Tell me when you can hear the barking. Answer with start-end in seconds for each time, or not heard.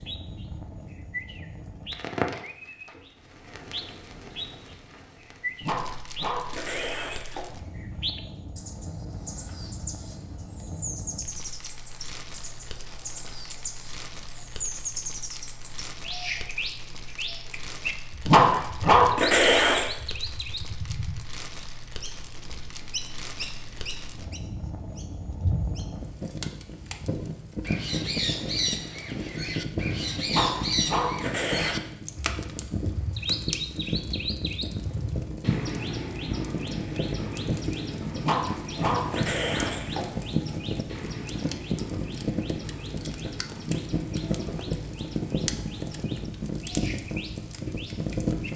5.6-7.5, 18.2-19.9, 30.2-31.8, 38.2-40.0.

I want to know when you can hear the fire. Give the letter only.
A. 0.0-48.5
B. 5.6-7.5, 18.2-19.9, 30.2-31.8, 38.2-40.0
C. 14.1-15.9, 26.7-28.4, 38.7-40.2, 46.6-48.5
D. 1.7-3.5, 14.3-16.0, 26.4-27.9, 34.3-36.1
A.